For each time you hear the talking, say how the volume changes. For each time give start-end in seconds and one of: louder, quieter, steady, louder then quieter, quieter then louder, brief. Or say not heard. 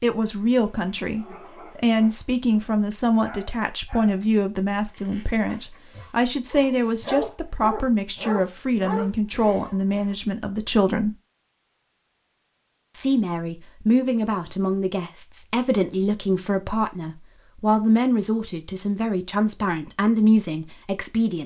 0.0-11.2 steady
12.9-21.4 steady.